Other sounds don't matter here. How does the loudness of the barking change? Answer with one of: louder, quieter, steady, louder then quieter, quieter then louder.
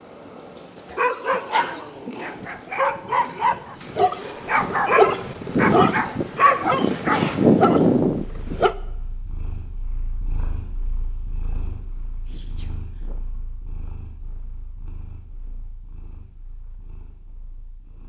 louder.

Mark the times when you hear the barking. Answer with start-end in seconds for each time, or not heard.
0.8-8.8.